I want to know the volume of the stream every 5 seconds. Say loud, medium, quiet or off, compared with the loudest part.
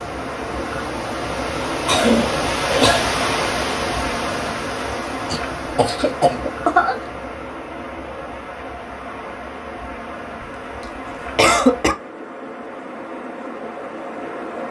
loud, medium, medium.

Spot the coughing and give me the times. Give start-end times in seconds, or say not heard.
1.9-3.1, 5.2-7.0, 10.4-11.9.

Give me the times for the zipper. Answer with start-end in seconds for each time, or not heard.
not heard.